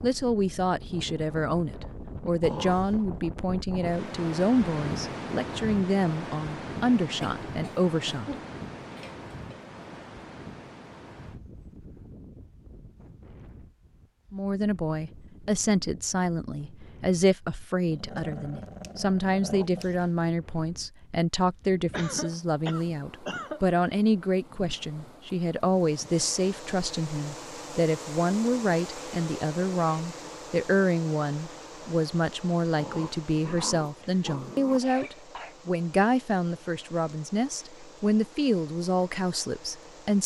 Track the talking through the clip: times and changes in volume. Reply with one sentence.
You can hear the talking from 0.0 to 8.3 s, at a steady volume; and from 14.3 to 40.2 s, at a steady volume.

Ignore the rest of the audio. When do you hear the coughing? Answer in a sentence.
You can hear the coughing from 7.2 to 9.6 s, from 21.9 to 23.6 s and from 34.8 to 35.5 s.